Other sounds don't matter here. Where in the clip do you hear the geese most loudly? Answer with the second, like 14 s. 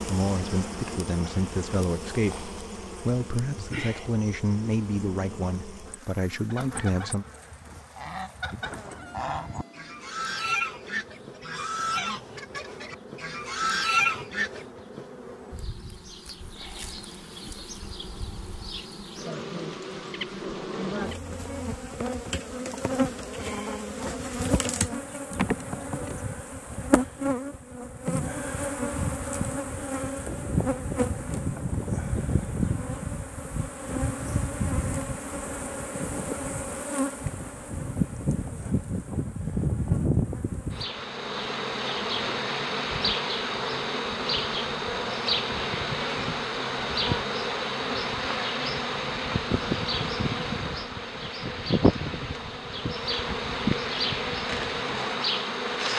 14 s.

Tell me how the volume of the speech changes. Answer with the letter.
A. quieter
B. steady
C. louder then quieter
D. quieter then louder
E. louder
B.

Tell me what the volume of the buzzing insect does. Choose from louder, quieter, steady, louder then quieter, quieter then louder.
louder.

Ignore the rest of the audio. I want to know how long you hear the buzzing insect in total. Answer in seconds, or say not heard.
56 s.